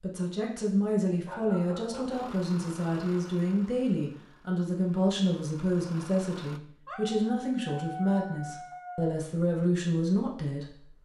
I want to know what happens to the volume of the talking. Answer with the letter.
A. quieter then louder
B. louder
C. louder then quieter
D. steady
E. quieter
D.